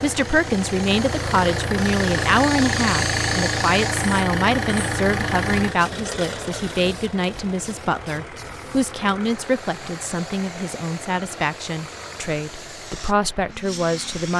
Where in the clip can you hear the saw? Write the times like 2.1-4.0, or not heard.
not heard.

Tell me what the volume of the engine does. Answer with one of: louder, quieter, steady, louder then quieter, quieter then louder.
quieter.